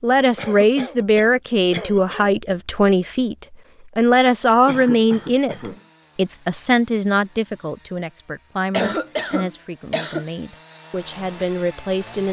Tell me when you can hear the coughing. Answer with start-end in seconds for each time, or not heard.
0.3-2.3, 4.7-5.8, 8.7-10.2.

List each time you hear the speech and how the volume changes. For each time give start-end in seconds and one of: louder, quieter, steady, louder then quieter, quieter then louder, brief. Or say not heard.
0.0-12.2 quieter.